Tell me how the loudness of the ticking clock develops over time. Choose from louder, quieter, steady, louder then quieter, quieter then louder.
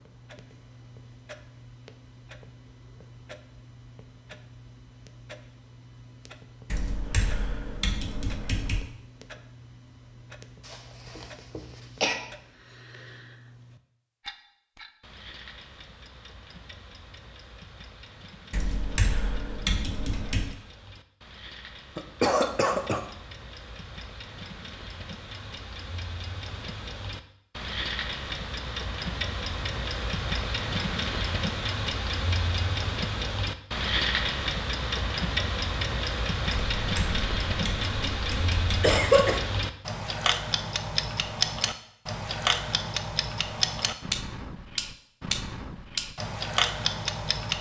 louder.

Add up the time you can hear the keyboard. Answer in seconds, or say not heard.
7 s.